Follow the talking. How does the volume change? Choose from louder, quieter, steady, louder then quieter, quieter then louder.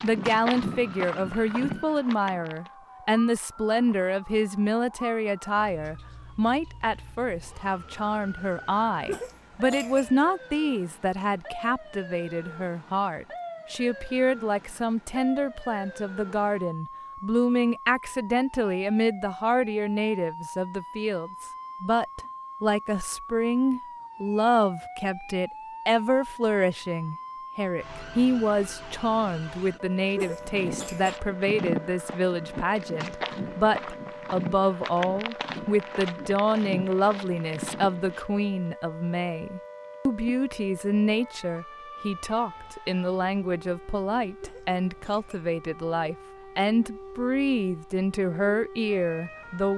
steady.